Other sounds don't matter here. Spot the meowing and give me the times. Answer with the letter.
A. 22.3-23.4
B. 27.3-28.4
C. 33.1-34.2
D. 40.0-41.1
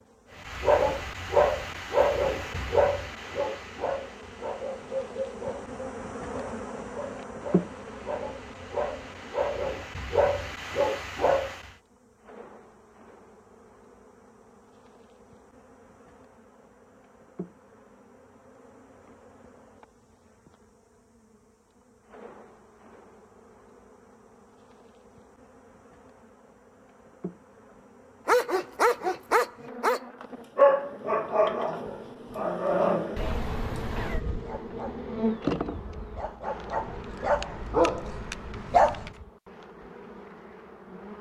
C.